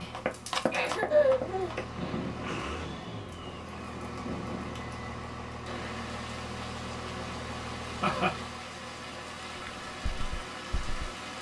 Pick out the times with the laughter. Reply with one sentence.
The laughter can be heard from 0.7 to 1.8 s and from 8.0 to 8.4 s.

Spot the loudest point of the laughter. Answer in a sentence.
The loudest moment of the laughter is at 1 second.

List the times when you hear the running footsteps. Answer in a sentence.
You can hear the running footsteps from 0.0 to 1.9 s and from 9.6 to 11.1 s.